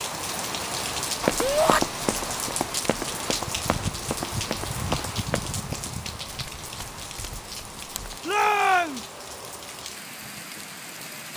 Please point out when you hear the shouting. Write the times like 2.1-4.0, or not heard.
1.4-1.8, 8.2-9.1.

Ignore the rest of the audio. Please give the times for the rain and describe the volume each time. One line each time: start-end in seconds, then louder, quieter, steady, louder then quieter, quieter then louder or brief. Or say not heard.
0.0-11.3 quieter.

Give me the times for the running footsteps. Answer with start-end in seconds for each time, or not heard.
1.2-8.2.